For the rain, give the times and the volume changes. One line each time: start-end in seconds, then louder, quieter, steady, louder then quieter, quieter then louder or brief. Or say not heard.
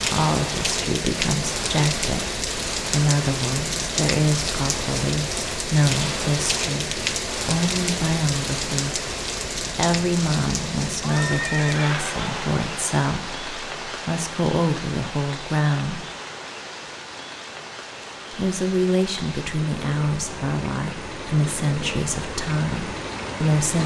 0.0-23.8 quieter.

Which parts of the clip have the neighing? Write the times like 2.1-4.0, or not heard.
11.0-12.4.